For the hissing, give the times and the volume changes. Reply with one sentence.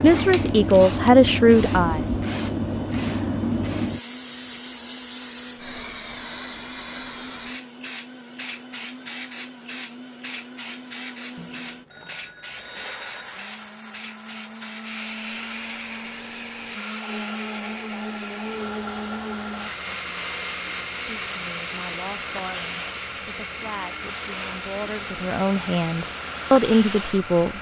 The hissing can be heard from 0.0 to 27.5 s, getting quieter.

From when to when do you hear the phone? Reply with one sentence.
The phone can be heard from 11.3 to 13.4 s.